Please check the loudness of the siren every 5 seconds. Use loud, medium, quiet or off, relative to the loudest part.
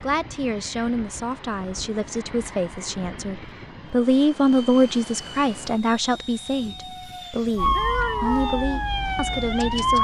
off, loud.